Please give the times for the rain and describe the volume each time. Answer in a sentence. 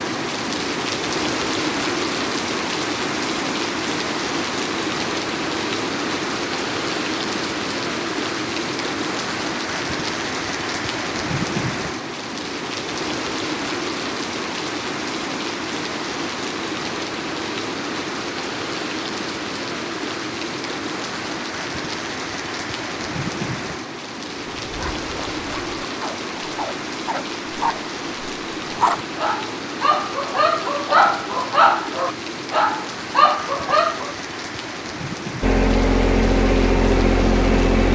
The rain can be heard from 0.0 to 37.9 s, getting quieter.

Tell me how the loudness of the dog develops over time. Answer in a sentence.
The volume of the dog goes up.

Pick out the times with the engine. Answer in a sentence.
The engine can be heard from 35.4 to 37.9 s.